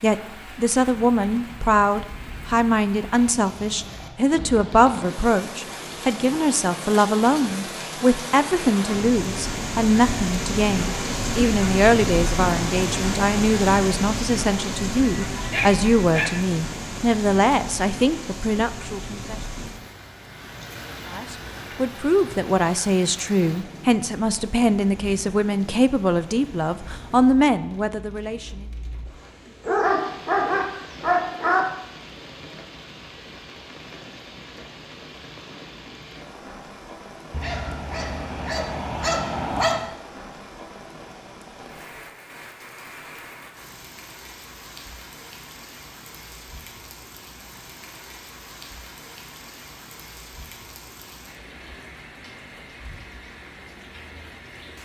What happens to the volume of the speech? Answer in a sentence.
The volume of the speech stays about the same.